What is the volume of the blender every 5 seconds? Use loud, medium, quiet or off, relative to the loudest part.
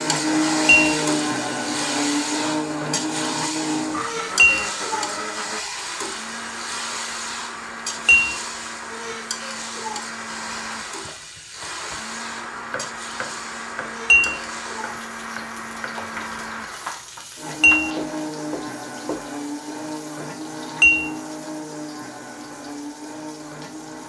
loud, medium, medium, medium, medium.